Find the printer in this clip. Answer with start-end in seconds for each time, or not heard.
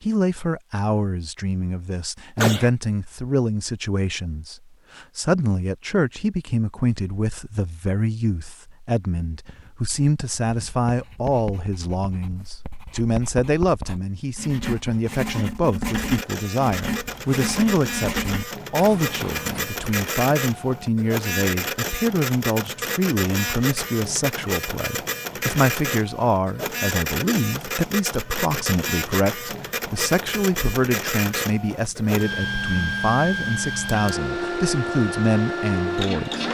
15.9-36.4.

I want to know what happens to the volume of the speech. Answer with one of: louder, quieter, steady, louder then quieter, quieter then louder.
steady.